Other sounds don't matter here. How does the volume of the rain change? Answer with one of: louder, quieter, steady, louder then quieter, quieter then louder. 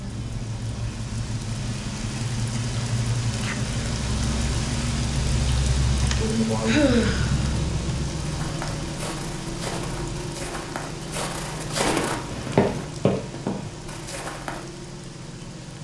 quieter.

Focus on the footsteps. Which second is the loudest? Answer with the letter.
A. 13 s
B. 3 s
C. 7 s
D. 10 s
A.